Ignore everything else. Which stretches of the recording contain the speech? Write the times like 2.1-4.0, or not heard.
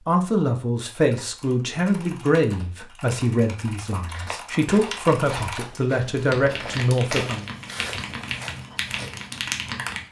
0.1-7.5.